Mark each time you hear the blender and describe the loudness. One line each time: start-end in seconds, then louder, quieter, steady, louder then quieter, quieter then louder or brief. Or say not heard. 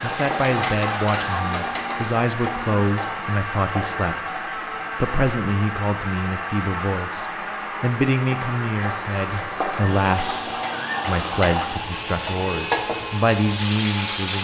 0.0-14.4 steady.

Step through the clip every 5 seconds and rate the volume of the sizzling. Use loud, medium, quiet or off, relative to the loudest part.
loud, medium, loud.